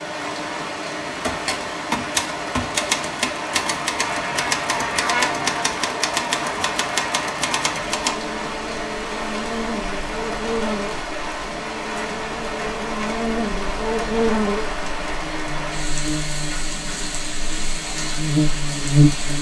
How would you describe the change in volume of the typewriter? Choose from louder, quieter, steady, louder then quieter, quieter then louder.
steady.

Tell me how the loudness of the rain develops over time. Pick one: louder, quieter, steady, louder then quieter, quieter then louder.
steady.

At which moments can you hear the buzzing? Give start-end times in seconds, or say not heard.
3.5-19.3.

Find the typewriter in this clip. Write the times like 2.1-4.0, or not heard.
1.1-8.2.